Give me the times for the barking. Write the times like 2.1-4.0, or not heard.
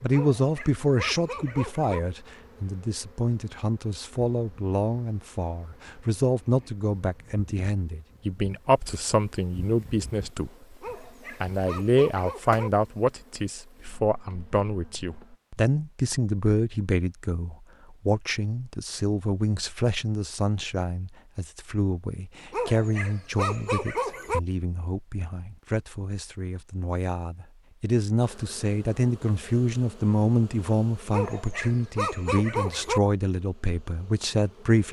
0.1-2.0, 10.8-12.7, 22.5-24.4, 31.1-33.0.